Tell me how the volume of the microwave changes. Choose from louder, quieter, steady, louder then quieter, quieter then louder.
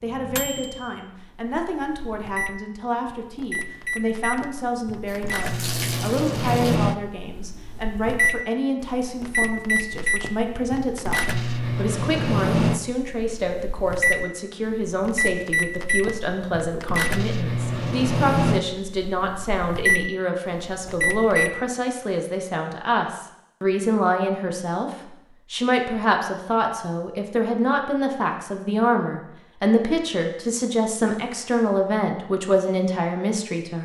louder.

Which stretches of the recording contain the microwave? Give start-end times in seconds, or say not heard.
0.0-21.5.